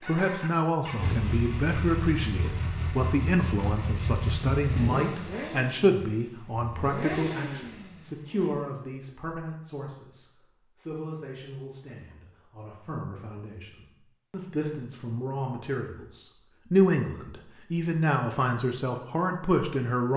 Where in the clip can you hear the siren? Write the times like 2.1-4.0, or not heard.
not heard.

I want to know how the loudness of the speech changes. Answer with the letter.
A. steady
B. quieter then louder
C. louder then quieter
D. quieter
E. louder
B.